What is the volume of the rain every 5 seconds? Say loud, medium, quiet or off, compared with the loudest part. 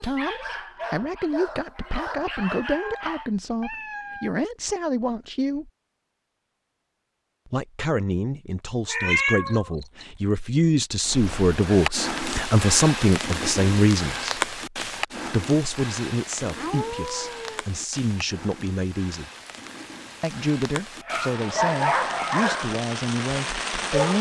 off, off, loud, medium, loud.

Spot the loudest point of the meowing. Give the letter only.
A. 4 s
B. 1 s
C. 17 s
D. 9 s
D.